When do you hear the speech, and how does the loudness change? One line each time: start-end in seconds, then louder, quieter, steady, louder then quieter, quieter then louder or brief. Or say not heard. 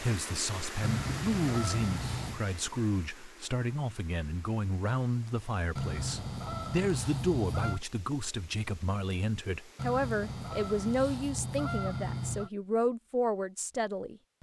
0.0-14.3 steady.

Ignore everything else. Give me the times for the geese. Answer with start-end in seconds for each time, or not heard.
0.8-2.4, 5.8-7.8, 9.8-12.5.